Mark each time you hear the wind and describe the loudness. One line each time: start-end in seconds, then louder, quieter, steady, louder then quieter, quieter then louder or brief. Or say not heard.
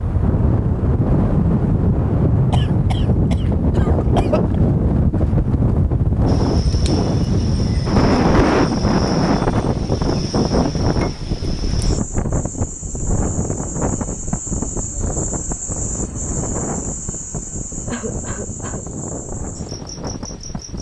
0.0-20.7 quieter.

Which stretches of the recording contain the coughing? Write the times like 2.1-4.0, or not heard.
2.5-4.6, 17.9-18.9.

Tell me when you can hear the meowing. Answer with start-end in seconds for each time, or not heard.
not heard.